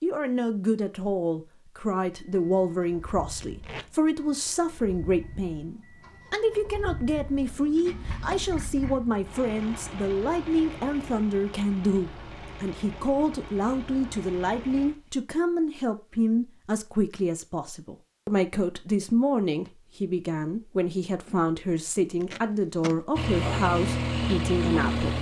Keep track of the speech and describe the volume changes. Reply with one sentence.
The volume of the speech stays about the same.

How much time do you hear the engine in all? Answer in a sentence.
You can hear the engine for 15 seconds altogether.